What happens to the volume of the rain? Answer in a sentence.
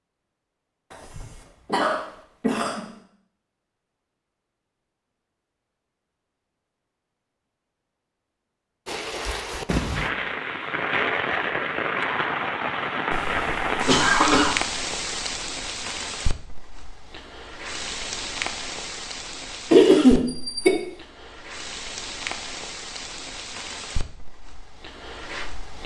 The loudness of the rain goes down.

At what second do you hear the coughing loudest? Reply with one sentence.
The volume of the coughing peaks at 20 seconds.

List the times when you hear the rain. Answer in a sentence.
The rain can be heard from 8.8 to 25.8 s.